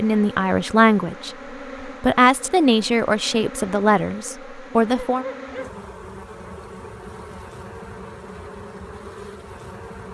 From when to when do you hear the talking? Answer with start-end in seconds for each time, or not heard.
0.0-5.2.